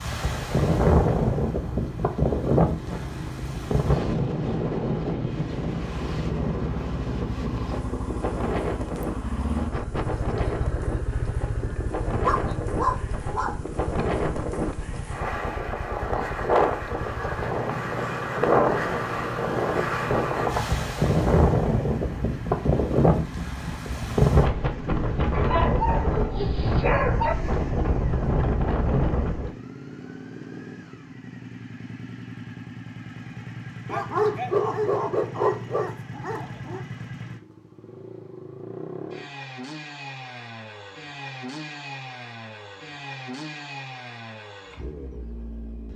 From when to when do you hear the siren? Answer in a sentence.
You can't hear the siren here.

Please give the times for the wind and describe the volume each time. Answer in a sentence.
The wind can be heard from 0.0 to 29.5 s, getting quieter then louder.